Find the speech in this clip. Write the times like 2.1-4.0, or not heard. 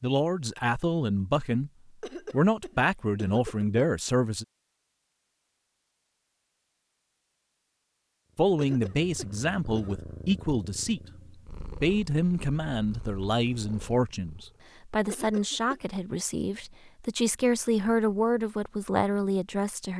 0.0-1.7, 2.3-4.5, 8.3-11.0, 11.8-19.9.